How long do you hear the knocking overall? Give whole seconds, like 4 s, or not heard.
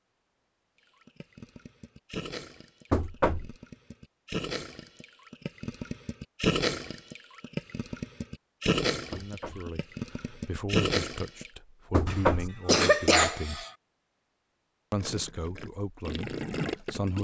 2 s.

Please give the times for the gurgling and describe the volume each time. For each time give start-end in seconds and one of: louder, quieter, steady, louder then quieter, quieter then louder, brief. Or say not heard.
1.0-11.5 louder
15.0-17.2 brief.